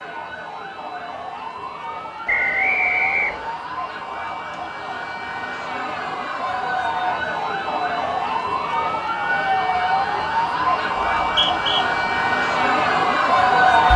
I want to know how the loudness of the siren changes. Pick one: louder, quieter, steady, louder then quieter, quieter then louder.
louder.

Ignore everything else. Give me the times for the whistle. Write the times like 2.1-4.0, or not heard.
2.2-3.6, 11.2-11.8.